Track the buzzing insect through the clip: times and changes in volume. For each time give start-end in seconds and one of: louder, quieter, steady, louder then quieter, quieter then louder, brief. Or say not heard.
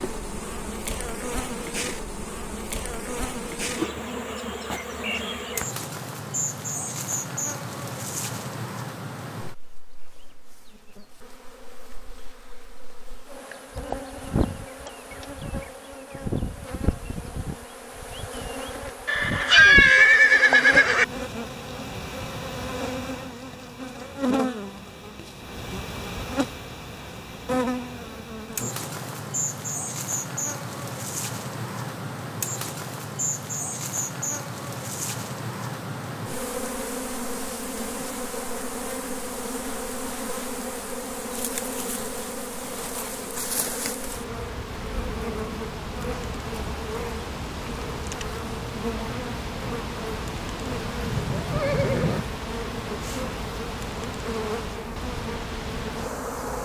0.0-56.5 steady.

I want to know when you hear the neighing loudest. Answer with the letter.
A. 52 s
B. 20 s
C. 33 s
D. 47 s
B.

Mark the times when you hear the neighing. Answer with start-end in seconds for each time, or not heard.
19.1-21.1, 50.7-52.2.